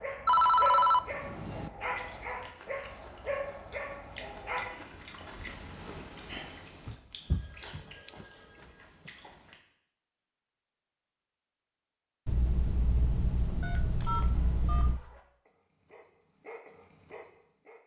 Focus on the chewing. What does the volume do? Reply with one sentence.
The volume of the chewing goes up, then down.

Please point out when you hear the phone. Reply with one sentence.
You can hear the phone from 0.2 to 1.7 s, from 6.8 to 8.6 s and from 12.2 to 15.0 s.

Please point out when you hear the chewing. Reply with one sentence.
The chewing can be heard from 1.9 to 9.6 s.